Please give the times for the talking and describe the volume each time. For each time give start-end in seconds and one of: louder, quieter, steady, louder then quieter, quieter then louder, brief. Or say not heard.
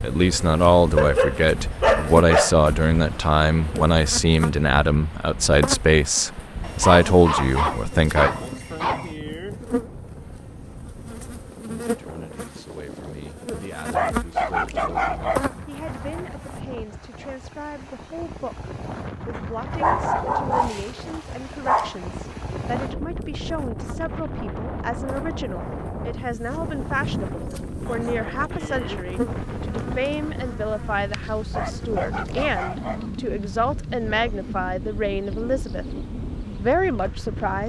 0.0-8.3 steady
11.8-35.9 louder
36.6-37.6 brief.